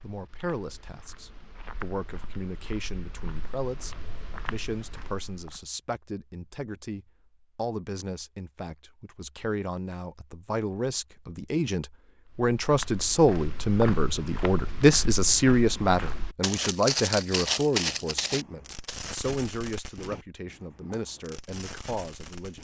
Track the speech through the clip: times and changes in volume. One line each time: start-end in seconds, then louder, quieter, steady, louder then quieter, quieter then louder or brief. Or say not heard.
0.0-22.5 louder then quieter.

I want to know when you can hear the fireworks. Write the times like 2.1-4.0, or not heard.
18.1-22.5.